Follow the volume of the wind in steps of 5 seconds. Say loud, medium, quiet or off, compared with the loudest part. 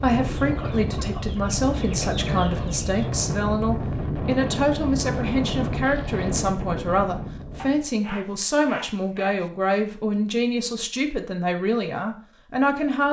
loud, loud, off.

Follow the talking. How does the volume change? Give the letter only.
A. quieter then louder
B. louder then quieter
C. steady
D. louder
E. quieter
C.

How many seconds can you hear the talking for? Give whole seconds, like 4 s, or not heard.
13 s.